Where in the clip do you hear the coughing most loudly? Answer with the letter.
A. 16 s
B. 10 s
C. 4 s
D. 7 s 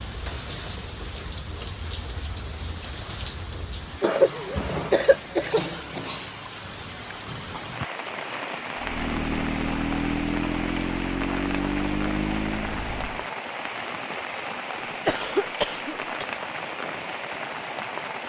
C.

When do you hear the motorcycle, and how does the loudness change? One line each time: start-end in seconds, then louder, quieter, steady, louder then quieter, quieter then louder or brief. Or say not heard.
8.8-13.2 steady.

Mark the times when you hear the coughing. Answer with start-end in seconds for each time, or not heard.
4.0-6.0, 14.8-16.2.